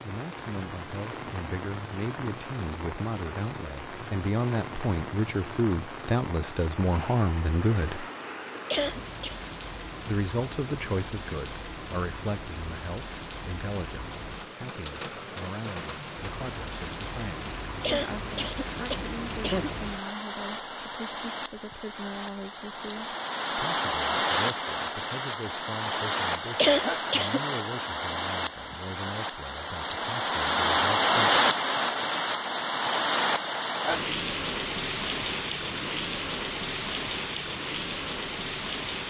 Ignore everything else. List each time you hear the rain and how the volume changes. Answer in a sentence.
You can hear the rain from 0.0 to 39.0 s, getting louder.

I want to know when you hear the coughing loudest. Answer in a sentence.
The loudest moment of the coughing is at 27 seconds.